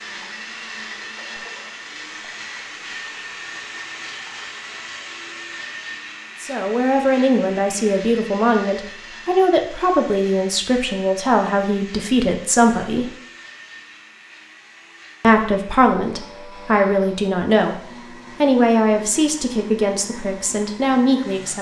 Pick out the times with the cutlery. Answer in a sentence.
The cutlery can't be heard in this clip.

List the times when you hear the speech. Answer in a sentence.
The speech can be heard from 6.4 to 13.1 s, from 15.2 to 17.8 s and from 18.4 to 21.5 s.